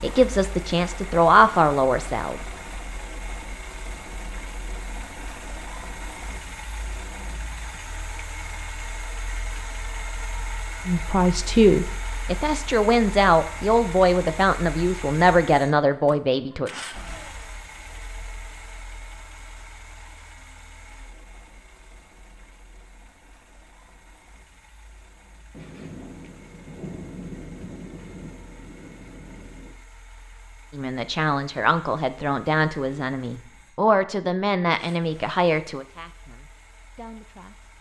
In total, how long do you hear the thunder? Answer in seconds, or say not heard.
4 s.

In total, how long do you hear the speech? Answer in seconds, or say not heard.
15 s.